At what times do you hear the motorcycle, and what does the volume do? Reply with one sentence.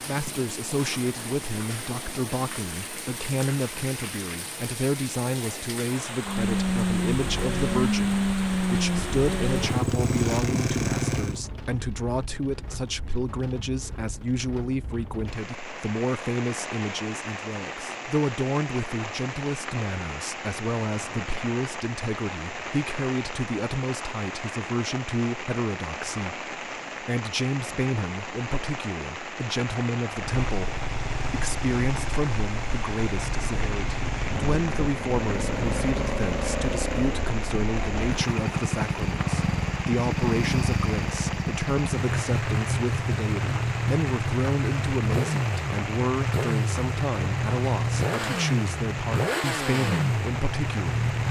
The motorcycle can be heard from 6.2 to 11.4 s, at a steady volume; and from 30.1 to 51.2 s, getting louder.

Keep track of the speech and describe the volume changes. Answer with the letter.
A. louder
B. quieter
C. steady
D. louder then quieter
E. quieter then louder
C.